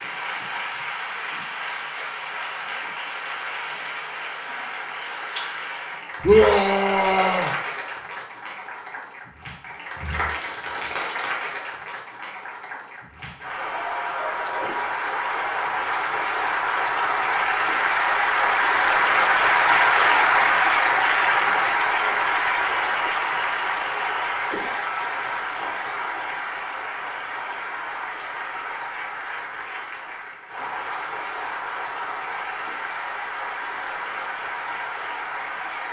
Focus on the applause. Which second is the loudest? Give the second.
20 s.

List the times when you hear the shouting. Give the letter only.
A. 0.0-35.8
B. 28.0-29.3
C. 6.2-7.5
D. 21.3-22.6
C.